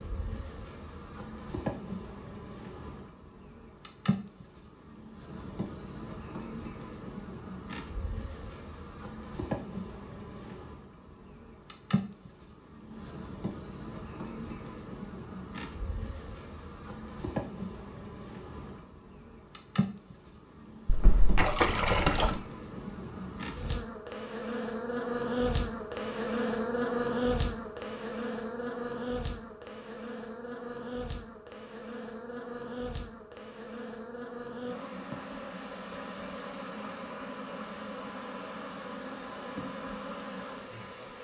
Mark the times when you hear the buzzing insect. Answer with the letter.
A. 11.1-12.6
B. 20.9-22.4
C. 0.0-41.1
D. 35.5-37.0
C.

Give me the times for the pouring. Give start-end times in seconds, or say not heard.
20.9-22.4.